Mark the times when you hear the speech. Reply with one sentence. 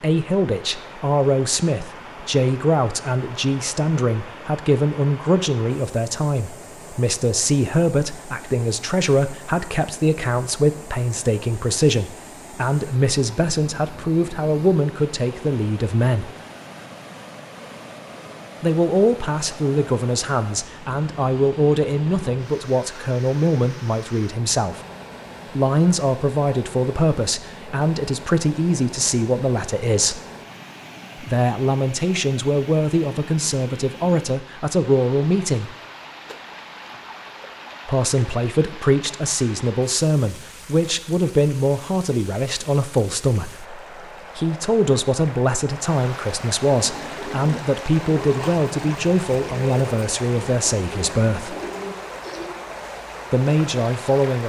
The speech can be heard from 0.0 to 16.3 s, from 18.6 to 24.8 s, from 25.5 to 30.2 s, from 31.2 to 35.8 s, from 37.9 to 51.5 s and from 53.3 to 54.4 s.